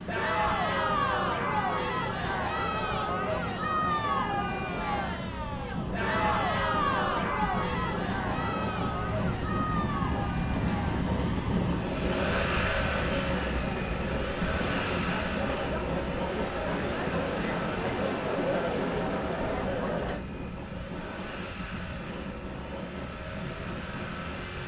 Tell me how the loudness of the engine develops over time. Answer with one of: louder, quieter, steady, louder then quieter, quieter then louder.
louder then quieter.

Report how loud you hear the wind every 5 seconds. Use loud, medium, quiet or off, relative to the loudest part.
medium, loud, loud, loud, medium.